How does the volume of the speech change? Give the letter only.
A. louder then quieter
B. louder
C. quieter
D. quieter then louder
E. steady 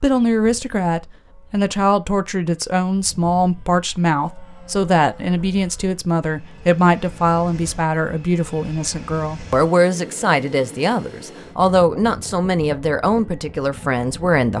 E.